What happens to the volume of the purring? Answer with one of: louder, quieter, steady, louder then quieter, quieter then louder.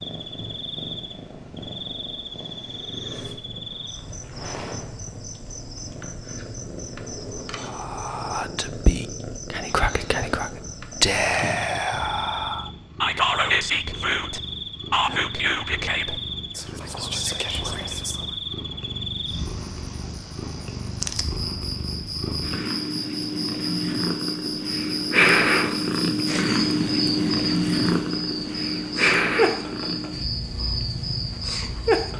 louder.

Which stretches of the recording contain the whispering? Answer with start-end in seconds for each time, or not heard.
7.5-18.4.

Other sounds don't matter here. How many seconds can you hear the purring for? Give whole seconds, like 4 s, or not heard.
32 s.